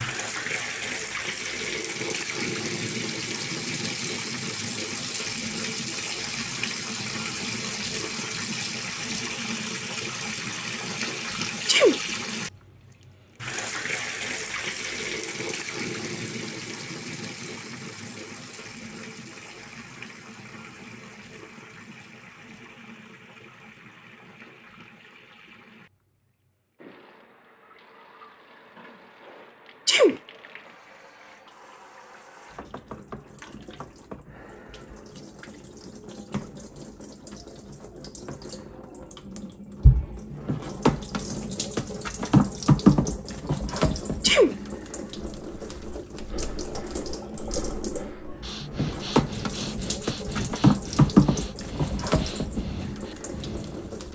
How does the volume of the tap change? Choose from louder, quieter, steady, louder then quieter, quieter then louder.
quieter then louder.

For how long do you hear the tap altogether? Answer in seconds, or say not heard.
54 s.